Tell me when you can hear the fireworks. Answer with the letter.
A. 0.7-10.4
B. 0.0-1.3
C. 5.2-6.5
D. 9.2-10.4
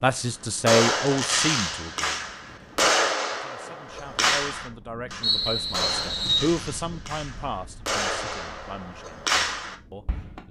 A.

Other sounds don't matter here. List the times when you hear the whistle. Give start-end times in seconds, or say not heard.
5.2-6.5.